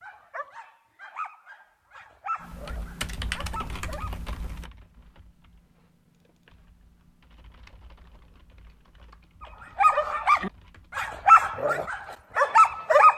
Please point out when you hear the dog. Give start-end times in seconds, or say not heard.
0.0-4.1, 9.8-13.1.